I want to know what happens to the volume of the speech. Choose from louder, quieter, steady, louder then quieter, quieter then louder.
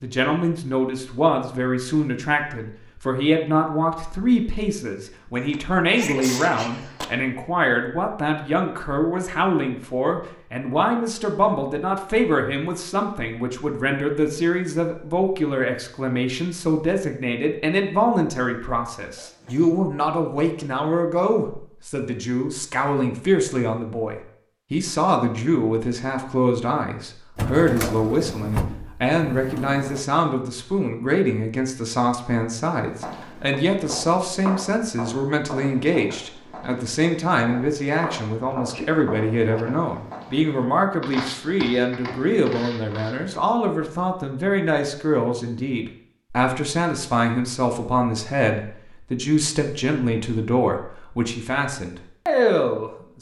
steady.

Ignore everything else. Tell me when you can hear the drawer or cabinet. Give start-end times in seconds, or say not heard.
27.4-30.1.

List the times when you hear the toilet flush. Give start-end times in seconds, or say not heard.
not heard.